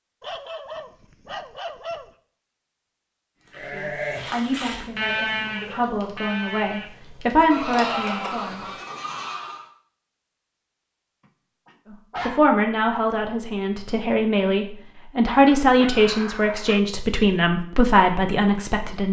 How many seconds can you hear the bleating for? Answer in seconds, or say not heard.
6 s.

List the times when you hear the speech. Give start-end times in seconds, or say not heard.
3.7-8.7, 11.9-19.0.